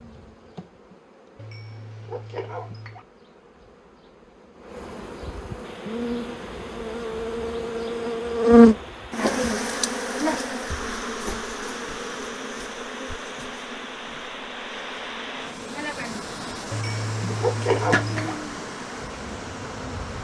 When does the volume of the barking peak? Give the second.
18 s.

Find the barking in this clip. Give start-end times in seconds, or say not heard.
1.4-3.0, 16.7-18.4.